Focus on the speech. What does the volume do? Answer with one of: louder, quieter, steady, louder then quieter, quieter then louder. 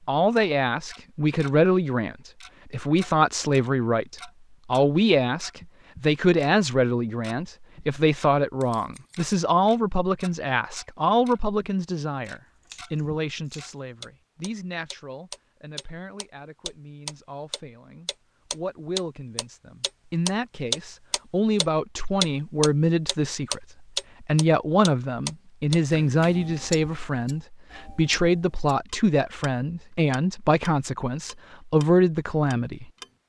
quieter then louder.